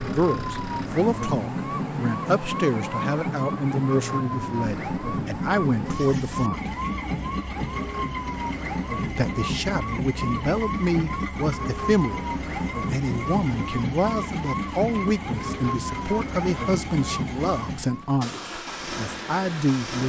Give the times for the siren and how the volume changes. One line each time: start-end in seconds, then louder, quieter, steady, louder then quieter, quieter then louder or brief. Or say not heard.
0.0-18.1 steady.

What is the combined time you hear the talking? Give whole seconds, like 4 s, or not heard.
18 s.